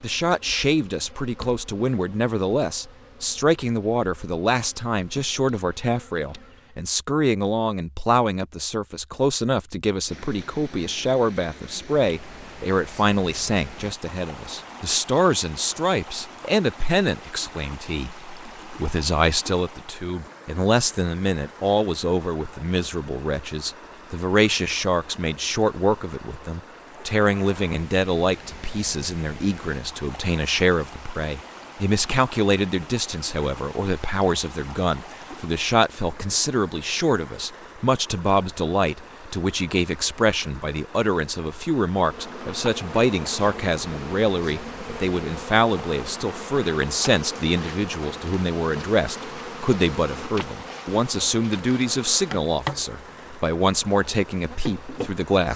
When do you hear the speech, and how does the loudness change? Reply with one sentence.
The speech can be heard from 0.0 to 55.5 s, at a steady volume.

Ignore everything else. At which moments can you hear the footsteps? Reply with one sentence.
You can't hear the footsteps here.